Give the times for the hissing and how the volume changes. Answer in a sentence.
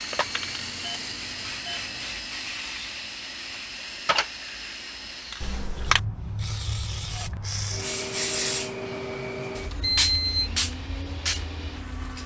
The hissing can be heard from 0.0 to 12.2 s, getting louder.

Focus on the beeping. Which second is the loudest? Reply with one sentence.
The loudest moment of the beeping is at 10 seconds.